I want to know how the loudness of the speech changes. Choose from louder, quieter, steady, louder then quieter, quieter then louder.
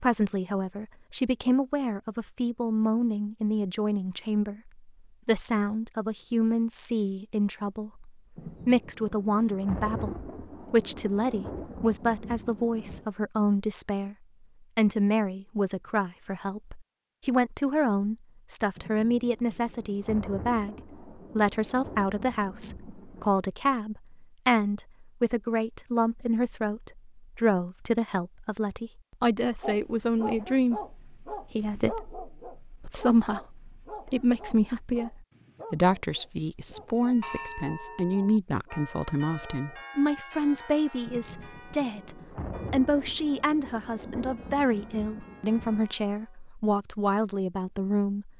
steady.